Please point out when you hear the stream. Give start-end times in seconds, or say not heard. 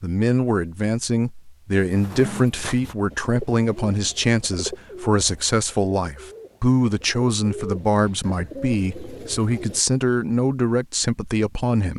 not heard.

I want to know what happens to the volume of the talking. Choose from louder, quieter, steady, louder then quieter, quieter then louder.
steady.